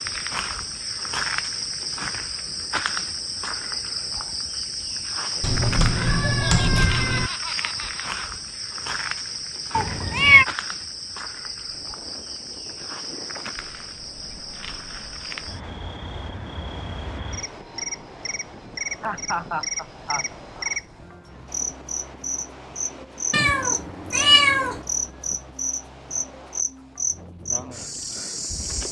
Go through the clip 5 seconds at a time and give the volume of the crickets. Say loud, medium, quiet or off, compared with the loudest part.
loud, loud, medium, medium, loud, loud.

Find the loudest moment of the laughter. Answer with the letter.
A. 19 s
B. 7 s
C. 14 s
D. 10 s
A.